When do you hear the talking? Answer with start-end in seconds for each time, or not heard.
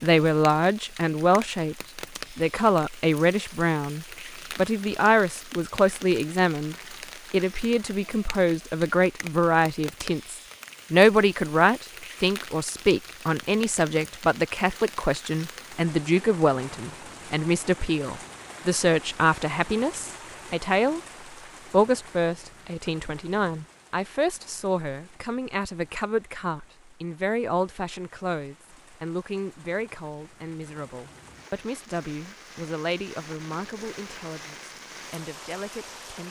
0.0-1.8, 2.4-21.0, 21.7-36.2.